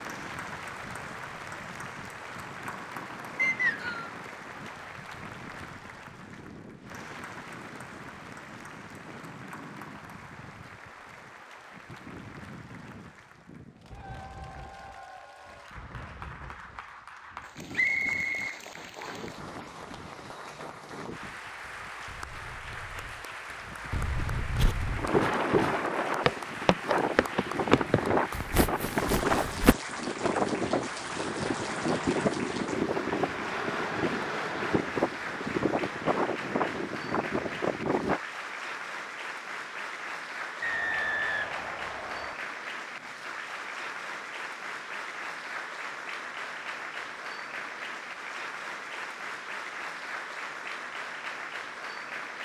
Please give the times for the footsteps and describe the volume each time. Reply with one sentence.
You can hear the footsteps from 24.6 to 29.8 s, getting quieter.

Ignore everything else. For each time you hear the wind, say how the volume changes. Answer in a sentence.
The wind can be heard from 0.0 to 38.2 s, getting louder.